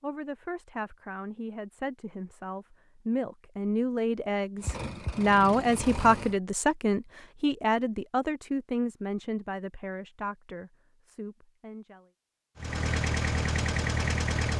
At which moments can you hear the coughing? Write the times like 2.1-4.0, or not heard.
not heard.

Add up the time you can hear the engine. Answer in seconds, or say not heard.
4 s.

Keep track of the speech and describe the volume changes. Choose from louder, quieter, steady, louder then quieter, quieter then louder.
louder then quieter.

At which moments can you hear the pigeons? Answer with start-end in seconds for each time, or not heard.
not heard.